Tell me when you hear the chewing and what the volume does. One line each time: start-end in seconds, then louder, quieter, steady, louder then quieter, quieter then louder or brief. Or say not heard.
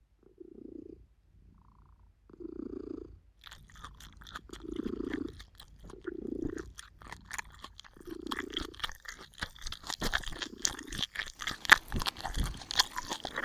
3.4-13.4 louder.